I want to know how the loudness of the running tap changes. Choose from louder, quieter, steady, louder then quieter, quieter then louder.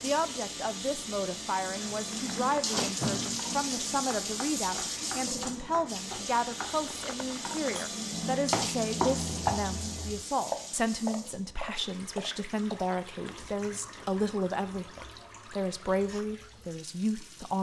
quieter.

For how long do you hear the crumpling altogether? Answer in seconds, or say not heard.
4 s.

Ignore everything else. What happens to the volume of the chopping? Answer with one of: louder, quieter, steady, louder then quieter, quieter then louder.
louder then quieter.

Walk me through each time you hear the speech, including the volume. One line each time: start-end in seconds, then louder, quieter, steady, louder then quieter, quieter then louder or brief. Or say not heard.
0.0-17.5 steady.